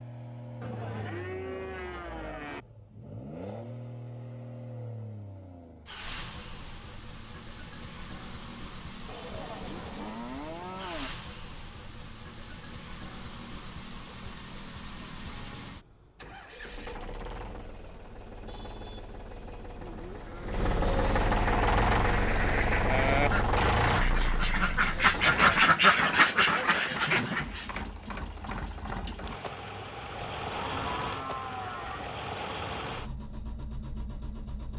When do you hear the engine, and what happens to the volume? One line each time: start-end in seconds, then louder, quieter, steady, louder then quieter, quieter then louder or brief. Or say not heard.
0.0-34.7 louder then quieter.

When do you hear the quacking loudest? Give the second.
26 s.